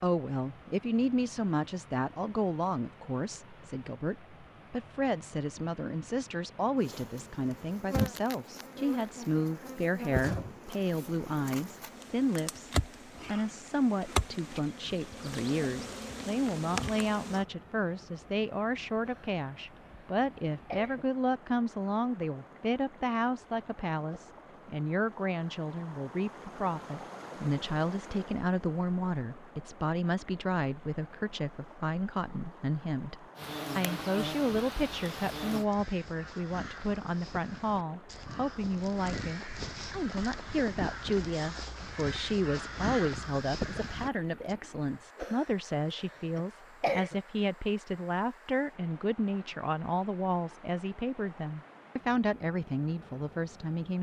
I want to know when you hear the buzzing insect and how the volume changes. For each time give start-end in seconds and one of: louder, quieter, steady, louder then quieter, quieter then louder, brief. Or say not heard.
6.8-17.4 steady
33.4-35.6 brief.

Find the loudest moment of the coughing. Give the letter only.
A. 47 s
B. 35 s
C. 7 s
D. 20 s
A.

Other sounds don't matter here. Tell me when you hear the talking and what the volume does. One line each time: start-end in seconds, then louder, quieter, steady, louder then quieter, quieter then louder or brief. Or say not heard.
0.0-53.9 steady.